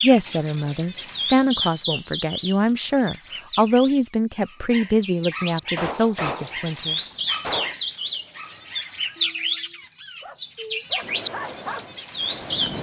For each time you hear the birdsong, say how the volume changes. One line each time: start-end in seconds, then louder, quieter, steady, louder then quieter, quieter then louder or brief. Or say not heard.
0.0-12.7 quieter then louder.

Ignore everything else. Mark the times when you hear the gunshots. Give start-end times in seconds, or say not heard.
5.8-7.8.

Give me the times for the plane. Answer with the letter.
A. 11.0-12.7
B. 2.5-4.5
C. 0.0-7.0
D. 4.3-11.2
A.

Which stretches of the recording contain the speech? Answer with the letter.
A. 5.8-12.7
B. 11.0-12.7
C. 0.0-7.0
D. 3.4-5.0
C.